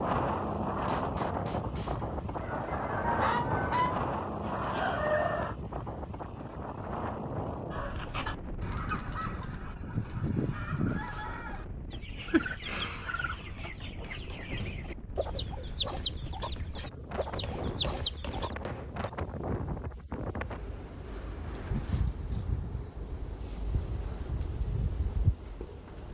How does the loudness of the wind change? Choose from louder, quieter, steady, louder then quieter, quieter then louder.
quieter then louder.